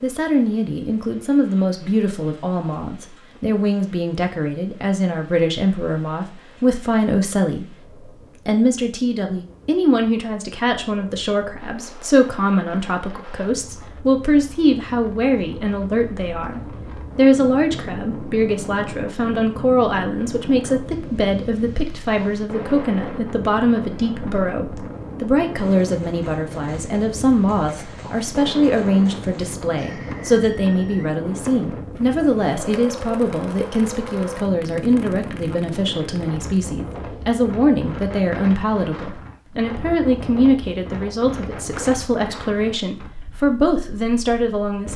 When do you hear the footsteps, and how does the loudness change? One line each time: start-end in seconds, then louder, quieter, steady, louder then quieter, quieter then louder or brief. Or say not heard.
not heard.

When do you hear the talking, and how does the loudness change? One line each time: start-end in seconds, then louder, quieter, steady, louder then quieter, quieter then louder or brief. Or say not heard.
0.0-7.8 steady
8.4-44.9 steady.